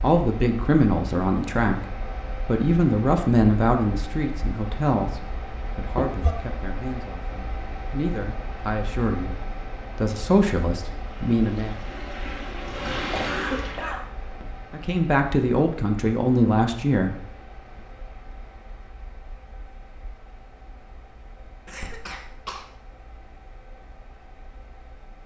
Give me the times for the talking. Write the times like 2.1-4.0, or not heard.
0.0-11.8, 14.7-17.2.